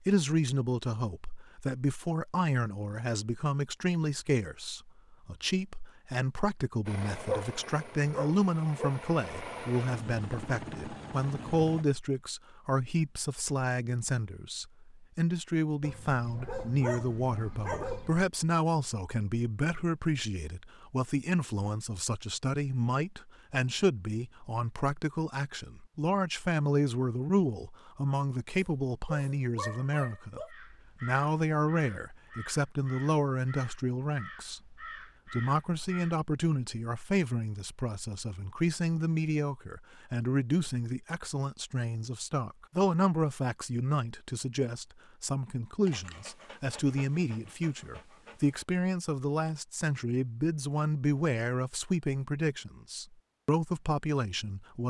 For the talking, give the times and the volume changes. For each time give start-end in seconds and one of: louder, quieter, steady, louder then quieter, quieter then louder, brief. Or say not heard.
0.1-54.8 steady.